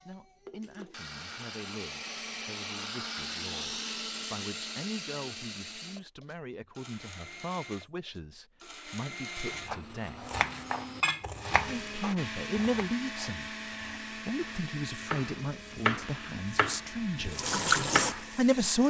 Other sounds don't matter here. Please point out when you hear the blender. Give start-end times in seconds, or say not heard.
0.0-18.8.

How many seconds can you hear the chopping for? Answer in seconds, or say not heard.
9 s.